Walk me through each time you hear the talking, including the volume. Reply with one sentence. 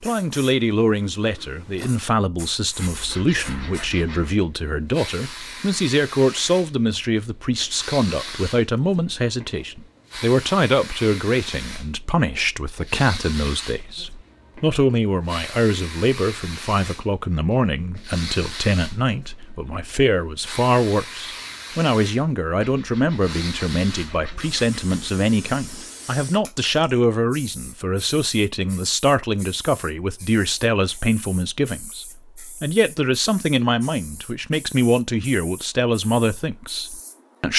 You can hear the talking from 0.0 to 37.5 s, at a steady volume.